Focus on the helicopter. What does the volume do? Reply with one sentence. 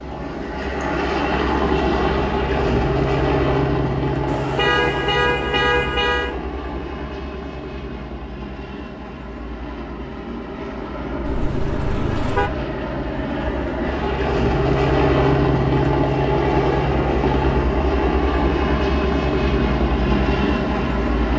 The loudness of the helicopter goes down, then up.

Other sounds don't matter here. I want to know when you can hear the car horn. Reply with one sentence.
You can hear the car horn from 4.2 to 6.3 s and from 11.2 to 12.6 s.